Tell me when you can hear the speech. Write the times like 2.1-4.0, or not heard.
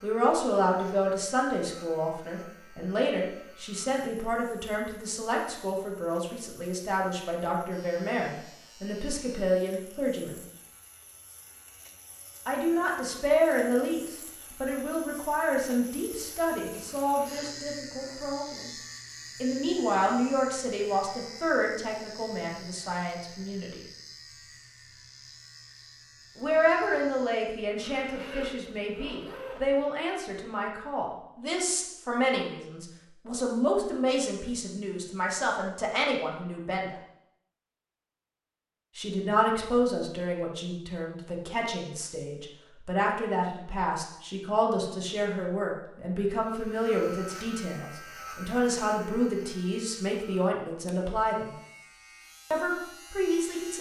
0.0-10.4, 12.4-18.7, 19.4-23.8, 26.4-37.0, 39.0-51.5, 52.5-53.7.